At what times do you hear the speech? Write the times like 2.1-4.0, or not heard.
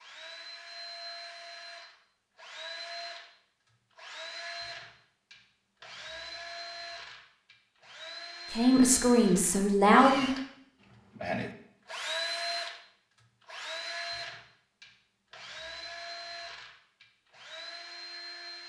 8.5-10.3.